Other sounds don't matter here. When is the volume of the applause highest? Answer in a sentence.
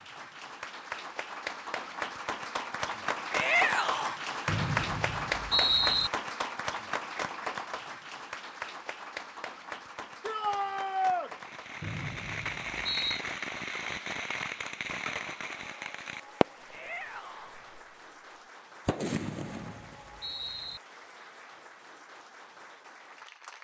The loudest moment of the applause is at 5 seconds.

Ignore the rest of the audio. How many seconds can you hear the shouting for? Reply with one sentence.
The shouting can be heard for 3 seconds in total.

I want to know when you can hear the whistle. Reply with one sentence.
You can hear the whistle from 4.5 to 6.1 s, from 11.8 to 13.2 s and from 19.2 to 20.8 s.